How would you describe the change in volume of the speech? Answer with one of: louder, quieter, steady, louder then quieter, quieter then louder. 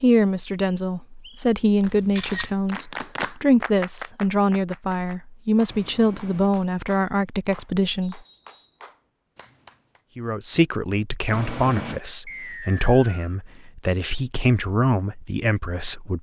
steady.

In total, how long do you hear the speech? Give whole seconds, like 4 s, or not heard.
14 s.